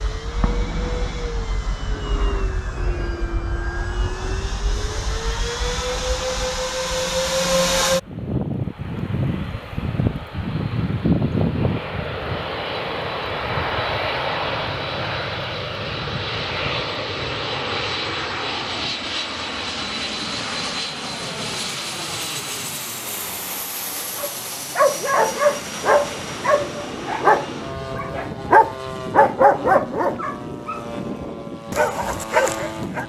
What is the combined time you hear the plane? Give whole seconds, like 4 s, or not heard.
33 s.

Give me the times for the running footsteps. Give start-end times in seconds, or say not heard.
not heard.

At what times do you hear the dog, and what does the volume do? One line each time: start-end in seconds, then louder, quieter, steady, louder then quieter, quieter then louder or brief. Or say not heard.
24.1-33.0 steady.